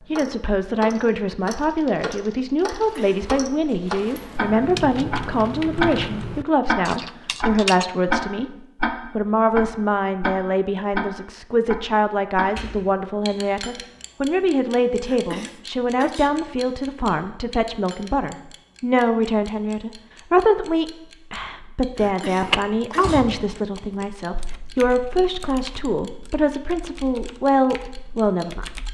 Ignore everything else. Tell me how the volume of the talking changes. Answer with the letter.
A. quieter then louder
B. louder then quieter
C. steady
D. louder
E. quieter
C.